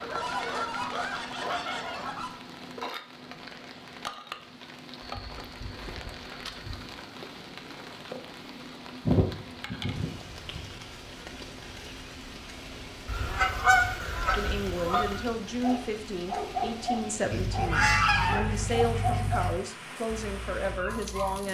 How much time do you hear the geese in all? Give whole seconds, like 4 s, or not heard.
10 s.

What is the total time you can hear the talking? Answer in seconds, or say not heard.
7 s.